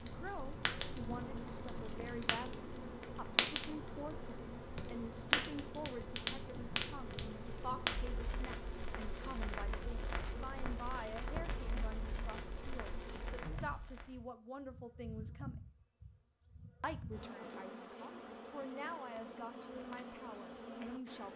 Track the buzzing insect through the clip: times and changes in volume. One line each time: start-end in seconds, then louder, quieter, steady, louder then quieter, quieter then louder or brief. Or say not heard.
0.0-21.3 steady.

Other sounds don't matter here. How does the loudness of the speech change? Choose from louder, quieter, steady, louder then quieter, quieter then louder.
steady.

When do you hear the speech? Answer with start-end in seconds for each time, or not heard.
0.0-15.6, 16.8-21.3.